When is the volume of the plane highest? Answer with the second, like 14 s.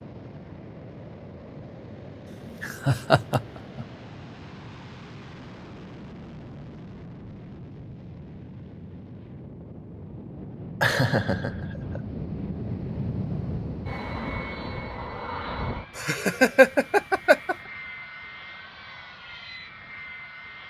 13 s.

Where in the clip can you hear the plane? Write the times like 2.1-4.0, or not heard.
0.0-20.6.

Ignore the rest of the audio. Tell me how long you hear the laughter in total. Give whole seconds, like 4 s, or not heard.
4 s.